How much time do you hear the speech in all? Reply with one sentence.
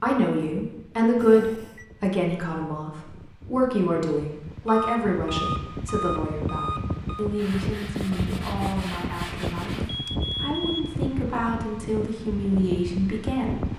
The speech can be heard for 14 seconds in total.